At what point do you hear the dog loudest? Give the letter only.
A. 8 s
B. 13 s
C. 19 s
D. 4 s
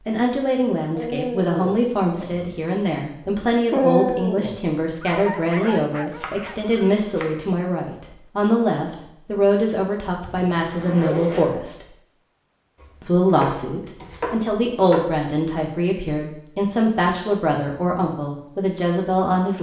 D.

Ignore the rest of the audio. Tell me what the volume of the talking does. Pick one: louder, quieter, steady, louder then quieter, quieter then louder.
steady.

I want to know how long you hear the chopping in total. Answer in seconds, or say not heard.
4 s.